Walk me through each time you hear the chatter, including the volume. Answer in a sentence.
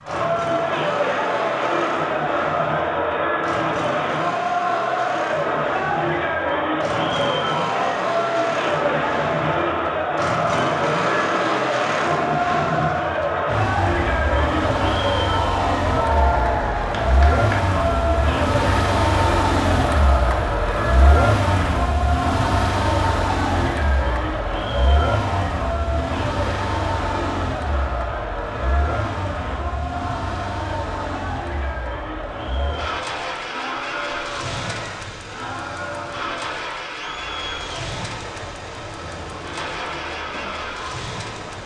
The chatter can be heard from 0.0 to 41.6 s, getting quieter.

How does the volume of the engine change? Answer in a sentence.
The volume of the engine goes up, then down.